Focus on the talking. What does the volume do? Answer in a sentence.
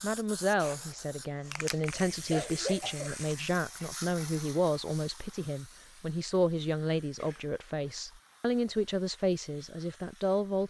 The volume of the talking stays about the same.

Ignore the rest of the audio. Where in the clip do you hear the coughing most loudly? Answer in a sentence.
The volume of the coughing peaks at 3 seconds.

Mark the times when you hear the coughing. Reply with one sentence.
The coughing can be heard from 2.1 to 3.1 s and from 7.0 to 8.0 s.